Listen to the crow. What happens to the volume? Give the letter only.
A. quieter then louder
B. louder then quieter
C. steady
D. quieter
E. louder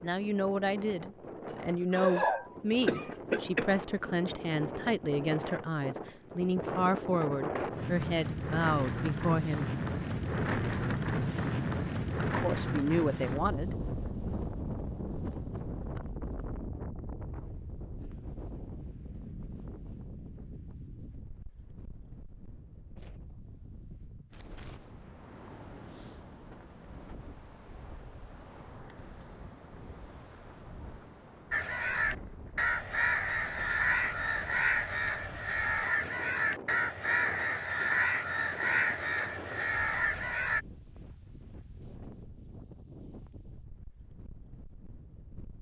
C.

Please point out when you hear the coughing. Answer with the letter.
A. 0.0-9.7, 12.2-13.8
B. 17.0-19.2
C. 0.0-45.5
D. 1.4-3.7
D.